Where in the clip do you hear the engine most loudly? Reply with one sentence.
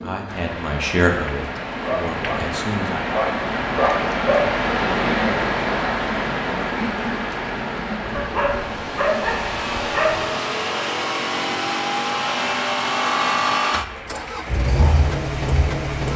The loudest moment of the engine is at 13 seconds.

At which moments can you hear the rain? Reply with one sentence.
The rain can be heard from 0.0 to 16.1 s.